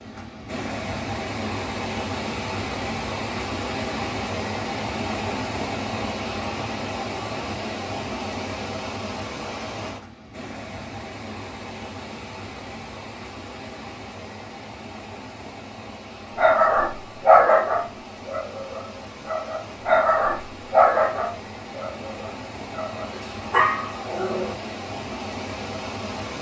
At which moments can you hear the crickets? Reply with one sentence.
You can't hear the crickets here.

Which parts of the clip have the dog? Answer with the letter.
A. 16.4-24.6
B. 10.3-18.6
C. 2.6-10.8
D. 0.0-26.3
A.